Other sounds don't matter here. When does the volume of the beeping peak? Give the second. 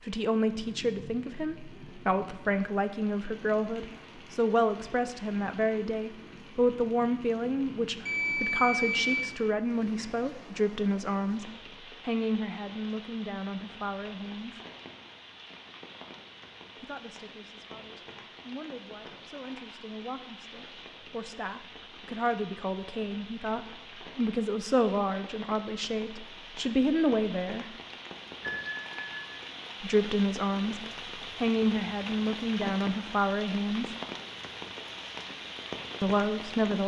9 s.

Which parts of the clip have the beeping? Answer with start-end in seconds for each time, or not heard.
8.1-9.3, 28.5-29.3.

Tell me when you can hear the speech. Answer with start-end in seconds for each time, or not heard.
0.0-14.6, 16.8-27.6, 29.8-34.0, 36.0-36.8.